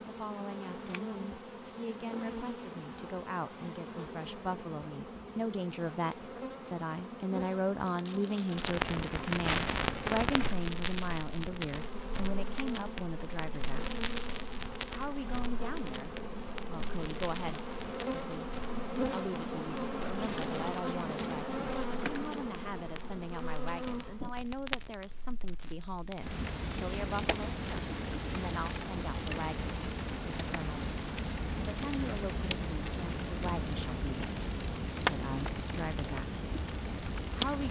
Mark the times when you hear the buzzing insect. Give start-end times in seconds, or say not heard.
0.0-24.4.